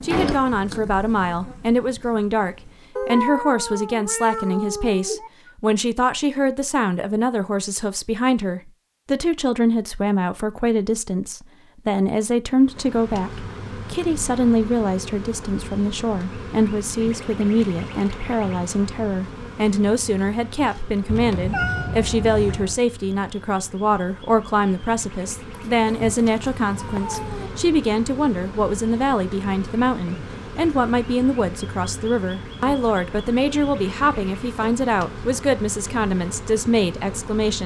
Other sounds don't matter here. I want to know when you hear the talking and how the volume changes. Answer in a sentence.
You can hear the talking from 0.0 to 37.6 s, at a steady volume.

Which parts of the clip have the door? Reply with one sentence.
The door can be heard from 0.1 to 0.7 s.